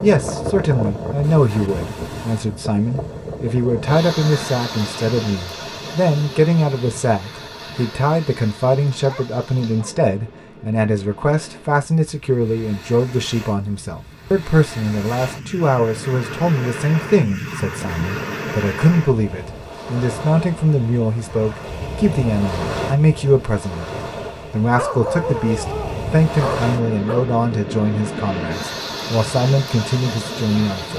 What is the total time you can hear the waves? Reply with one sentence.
You can hear the waves for 31 seconds altogether.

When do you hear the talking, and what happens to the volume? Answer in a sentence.
The talking can be heard from 0.0 to 30.9 s, at a steady volume.